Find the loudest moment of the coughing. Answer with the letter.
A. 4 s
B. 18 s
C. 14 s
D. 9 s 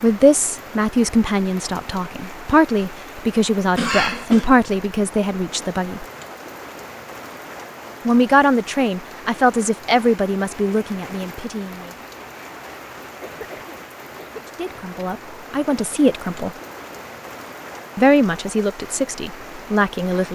A.